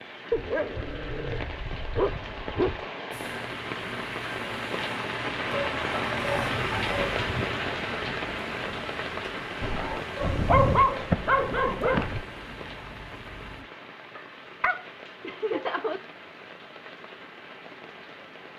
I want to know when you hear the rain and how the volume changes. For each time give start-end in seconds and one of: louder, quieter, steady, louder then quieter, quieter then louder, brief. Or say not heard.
0.0-18.5 louder then quieter.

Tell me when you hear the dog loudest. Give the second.
11 s.